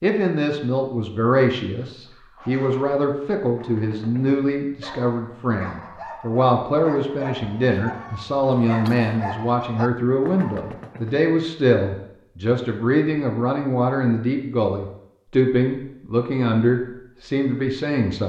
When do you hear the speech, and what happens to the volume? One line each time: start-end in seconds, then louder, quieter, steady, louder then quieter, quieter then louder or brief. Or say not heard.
0.0-18.2 steady.